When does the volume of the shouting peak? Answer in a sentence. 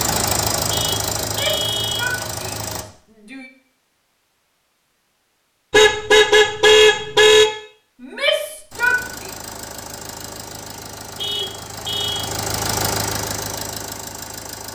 The loudest moment of the shouting is at 9 seconds.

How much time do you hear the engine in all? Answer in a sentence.
The engine can be heard for 9 seconds in total.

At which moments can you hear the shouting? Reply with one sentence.
You can hear the shouting from 1.2 to 3.5 s and from 8.0 to 9.3 s.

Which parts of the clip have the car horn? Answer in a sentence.
The car horn can be heard from 0.7 to 2.0 s, from 5.7 to 7.5 s and from 11.2 to 12.3 s.